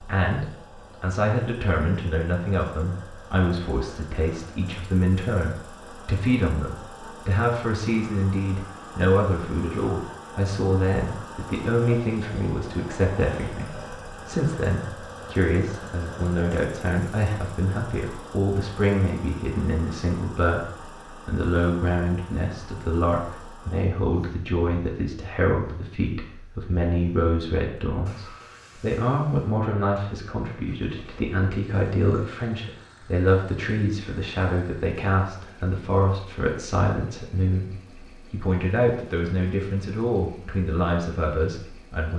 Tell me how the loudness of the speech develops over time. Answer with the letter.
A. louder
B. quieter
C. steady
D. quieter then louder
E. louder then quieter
C.